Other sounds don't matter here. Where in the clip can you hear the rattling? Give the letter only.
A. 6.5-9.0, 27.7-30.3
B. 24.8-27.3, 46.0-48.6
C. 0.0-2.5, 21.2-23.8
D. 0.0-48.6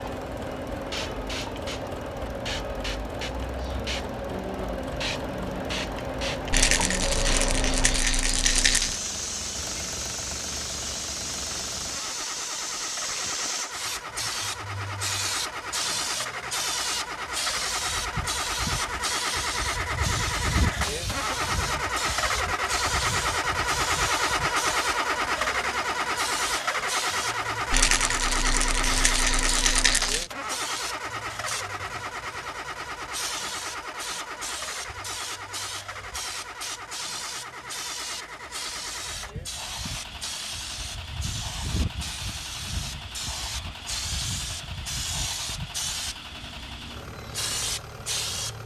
A.